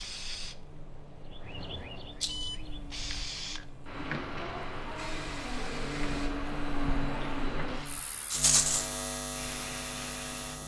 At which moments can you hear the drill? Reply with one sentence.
The drill can't be heard in this clip.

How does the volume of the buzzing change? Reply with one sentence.
The loudness of the buzzing goes up.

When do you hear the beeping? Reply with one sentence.
The beeping can be heard from 2.2 to 3.4 s.